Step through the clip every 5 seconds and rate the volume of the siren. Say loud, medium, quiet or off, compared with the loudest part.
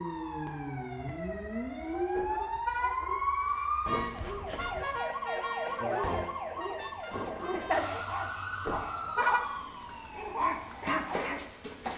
loud, loud, medium.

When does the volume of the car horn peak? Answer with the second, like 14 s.
9 s.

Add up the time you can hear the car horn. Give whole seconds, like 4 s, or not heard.
2 s.